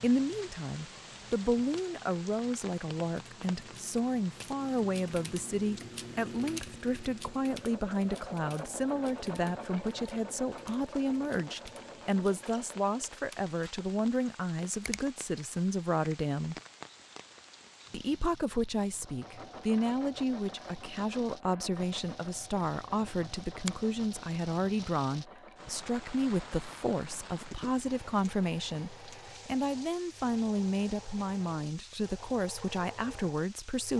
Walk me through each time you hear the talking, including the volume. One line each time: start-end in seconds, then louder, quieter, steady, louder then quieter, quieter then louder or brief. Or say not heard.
0.0-16.6 steady
17.9-33.9 steady.